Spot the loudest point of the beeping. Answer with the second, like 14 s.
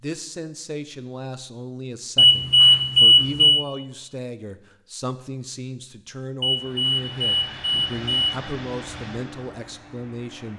3 s.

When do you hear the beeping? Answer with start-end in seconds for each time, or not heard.
2.1-3.6, 6.4-8.4.